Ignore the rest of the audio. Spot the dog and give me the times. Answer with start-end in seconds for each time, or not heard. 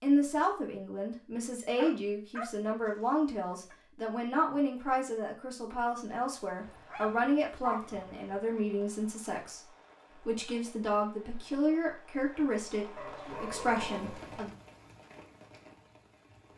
1.8-3.8, 6.7-8.3, 12.9-14.3.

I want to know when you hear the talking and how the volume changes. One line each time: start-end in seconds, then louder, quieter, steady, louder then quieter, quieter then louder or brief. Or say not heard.
0.0-14.5 steady.